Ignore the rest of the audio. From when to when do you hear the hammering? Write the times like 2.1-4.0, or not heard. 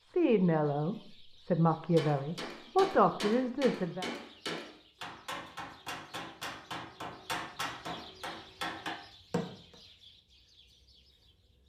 1.8-9.8.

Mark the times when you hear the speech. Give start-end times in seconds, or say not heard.
0.0-4.0.